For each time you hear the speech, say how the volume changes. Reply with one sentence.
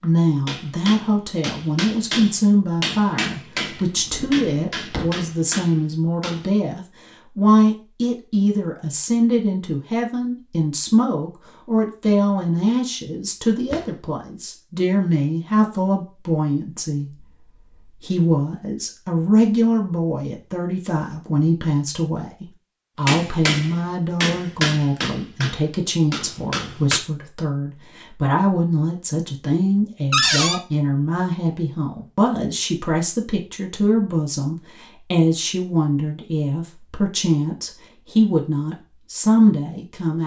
You can hear the speech from 0.0 to 40.2 s, at a steady volume.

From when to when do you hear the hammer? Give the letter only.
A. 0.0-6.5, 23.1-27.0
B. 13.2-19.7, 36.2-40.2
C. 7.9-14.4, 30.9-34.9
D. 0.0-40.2
A.